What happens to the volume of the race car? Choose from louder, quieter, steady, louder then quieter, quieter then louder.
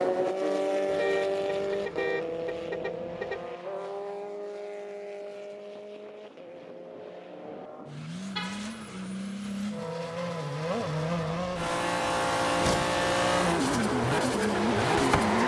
quieter then louder.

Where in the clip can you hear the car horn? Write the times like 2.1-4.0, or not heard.
0.8-3.5, 8.3-8.9.